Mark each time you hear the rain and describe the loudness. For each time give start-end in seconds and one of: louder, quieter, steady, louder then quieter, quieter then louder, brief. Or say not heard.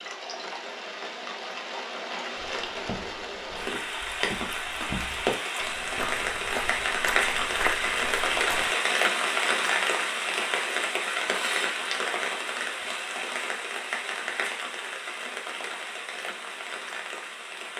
0.0-17.7 louder then quieter.